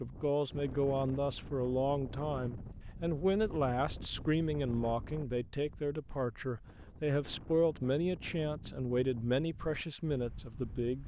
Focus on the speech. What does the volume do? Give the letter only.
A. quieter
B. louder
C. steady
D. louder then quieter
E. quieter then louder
C.